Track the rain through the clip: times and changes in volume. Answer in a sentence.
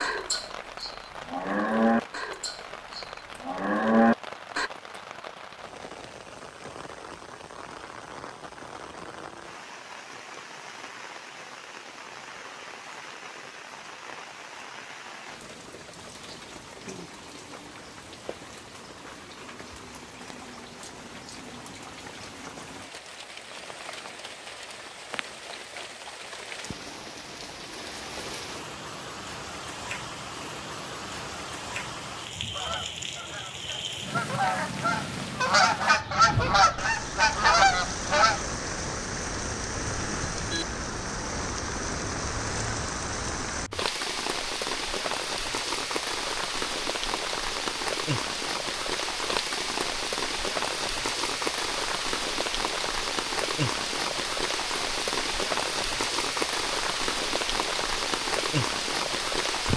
The rain can be heard from 0.0 to 59.7 s, getting louder.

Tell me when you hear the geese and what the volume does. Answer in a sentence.
The geese can be heard from 32.5 to 38.4 s, getting louder.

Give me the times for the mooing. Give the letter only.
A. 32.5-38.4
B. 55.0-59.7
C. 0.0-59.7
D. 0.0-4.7
D.